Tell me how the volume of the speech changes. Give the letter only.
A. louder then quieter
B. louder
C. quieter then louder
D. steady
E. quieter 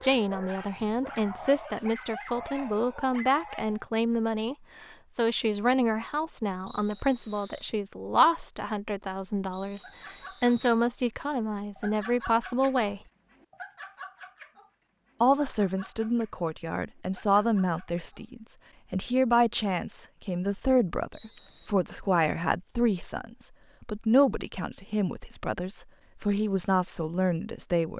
D.